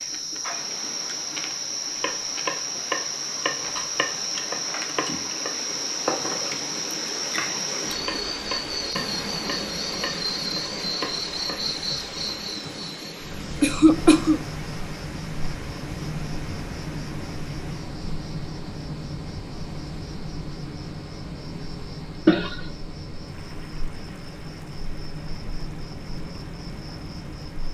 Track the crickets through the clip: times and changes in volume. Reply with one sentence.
You can hear the crickets from 0.0 to 27.6 s, getting quieter.